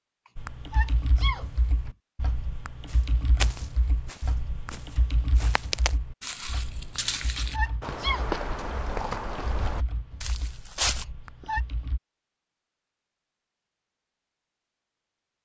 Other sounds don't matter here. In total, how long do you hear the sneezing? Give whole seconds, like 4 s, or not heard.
3 s.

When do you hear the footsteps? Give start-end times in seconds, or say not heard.
2.9-11.1.